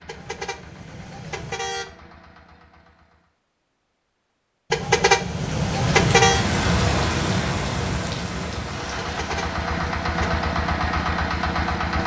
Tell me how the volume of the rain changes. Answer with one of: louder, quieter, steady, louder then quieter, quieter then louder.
quieter.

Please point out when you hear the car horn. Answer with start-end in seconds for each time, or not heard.
0.1-1.9, 4.7-6.5, 9.1-10.4.